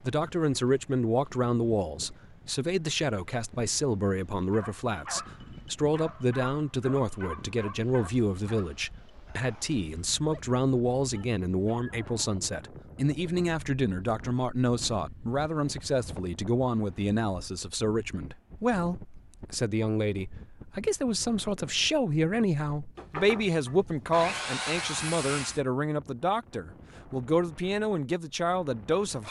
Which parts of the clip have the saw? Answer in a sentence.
You can hear the saw from 22.9 to 25.6 s.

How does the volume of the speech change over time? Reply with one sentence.
The volume of the speech stays about the same.